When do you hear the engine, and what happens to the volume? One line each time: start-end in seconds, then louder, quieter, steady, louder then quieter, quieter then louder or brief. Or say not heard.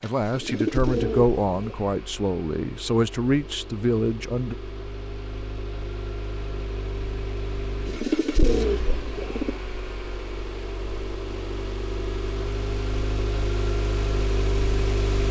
0.0-15.2 louder.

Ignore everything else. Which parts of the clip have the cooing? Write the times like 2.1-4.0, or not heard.
0.3-1.8, 7.8-9.6.